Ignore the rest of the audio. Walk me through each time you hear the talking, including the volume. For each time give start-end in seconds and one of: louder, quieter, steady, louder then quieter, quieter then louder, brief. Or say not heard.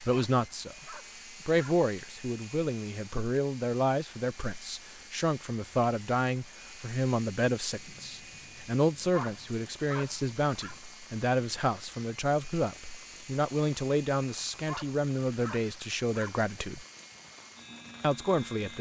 0.0-16.9 steady
18.0-18.7 brief.